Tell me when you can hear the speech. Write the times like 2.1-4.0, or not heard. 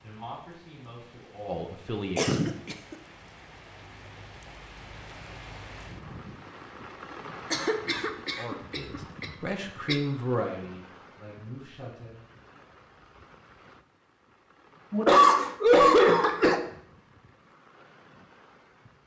0.0-2.4, 8.3-12.2.